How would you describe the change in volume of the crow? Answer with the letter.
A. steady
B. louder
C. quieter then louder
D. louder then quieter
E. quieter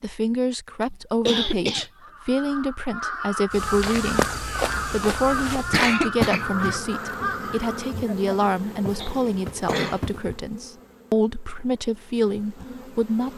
A.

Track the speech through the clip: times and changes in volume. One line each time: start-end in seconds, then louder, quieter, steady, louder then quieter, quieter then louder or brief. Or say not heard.
0.0-13.3 steady.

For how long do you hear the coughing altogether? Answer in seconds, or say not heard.
3 s.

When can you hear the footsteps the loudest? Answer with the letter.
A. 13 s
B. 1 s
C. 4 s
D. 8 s
C.